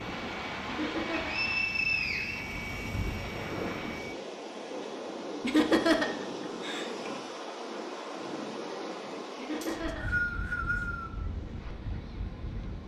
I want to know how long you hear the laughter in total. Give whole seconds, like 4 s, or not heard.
4 s.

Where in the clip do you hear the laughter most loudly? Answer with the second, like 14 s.
6 s.